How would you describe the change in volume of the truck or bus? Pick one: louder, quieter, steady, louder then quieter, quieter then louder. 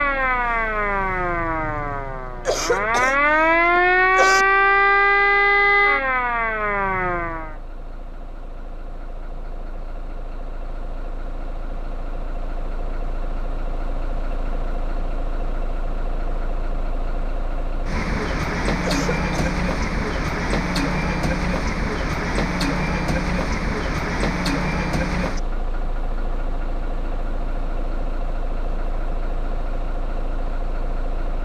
louder then quieter.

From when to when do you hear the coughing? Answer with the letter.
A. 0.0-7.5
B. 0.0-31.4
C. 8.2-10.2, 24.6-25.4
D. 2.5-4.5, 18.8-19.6
D.